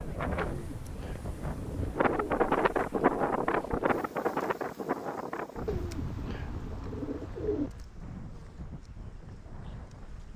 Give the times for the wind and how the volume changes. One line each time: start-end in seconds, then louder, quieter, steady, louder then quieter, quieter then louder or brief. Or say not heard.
0.0-10.3 louder then quieter.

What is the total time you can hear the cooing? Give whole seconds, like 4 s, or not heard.
4 s.